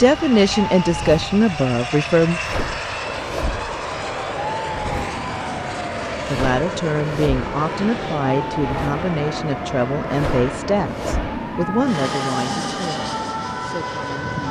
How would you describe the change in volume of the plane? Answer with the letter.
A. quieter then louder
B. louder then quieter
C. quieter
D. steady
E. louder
D.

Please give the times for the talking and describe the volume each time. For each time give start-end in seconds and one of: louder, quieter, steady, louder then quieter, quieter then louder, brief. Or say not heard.
0.0-2.4 brief
6.2-14.4 quieter.